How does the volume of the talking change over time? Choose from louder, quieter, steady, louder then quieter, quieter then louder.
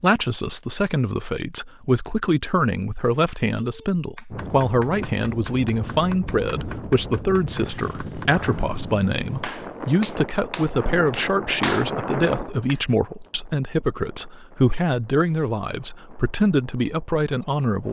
steady.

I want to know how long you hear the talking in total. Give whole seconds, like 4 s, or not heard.
18 s.